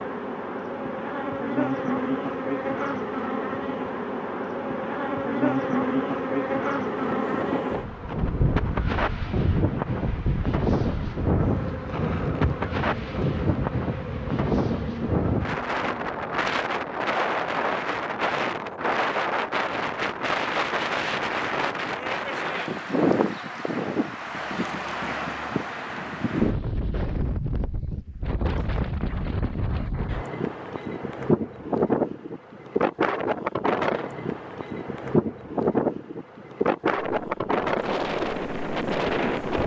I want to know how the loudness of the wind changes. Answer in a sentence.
The volume of the wind stays about the same.